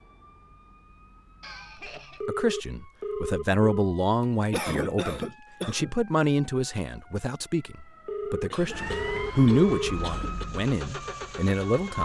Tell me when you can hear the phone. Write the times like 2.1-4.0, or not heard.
2.2-3.6, 8.1-9.9.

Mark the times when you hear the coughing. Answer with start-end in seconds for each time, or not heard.
1.4-2.2, 4.2-6.0, 8.5-10.4.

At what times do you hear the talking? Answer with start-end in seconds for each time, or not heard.
1.9-11.9.